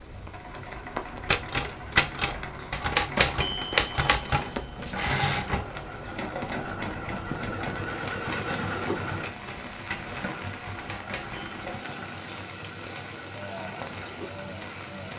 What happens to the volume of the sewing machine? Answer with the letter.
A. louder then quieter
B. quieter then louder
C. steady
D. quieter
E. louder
A.